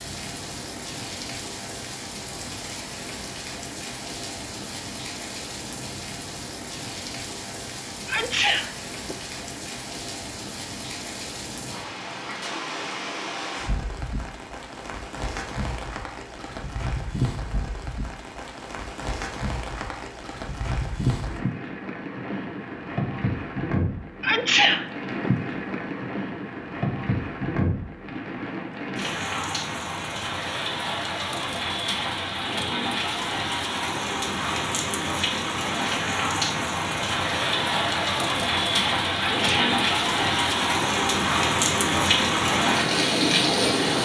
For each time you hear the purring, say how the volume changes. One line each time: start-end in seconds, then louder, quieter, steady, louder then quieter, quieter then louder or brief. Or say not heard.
not heard.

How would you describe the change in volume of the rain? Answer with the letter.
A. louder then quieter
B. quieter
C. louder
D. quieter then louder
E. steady
C.